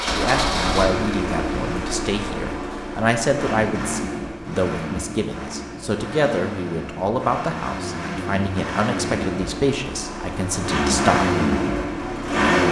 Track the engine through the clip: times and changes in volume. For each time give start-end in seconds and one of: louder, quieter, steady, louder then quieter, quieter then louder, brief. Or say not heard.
0.0-12.6 quieter then louder.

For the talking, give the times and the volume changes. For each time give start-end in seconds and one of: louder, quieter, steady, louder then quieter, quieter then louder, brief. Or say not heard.
0.0-11.3 steady.